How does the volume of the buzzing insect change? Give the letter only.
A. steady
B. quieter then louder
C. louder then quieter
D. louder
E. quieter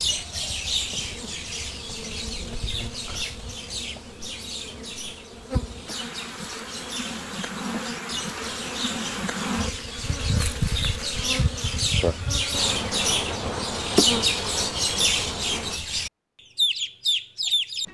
D.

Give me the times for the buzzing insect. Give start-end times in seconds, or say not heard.
0.0-15.8.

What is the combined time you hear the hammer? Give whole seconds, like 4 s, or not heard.
not heard.